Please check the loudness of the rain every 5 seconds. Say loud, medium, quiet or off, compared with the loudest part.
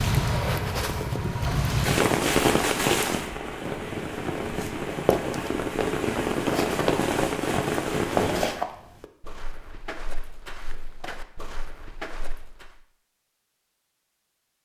loud, loud, off.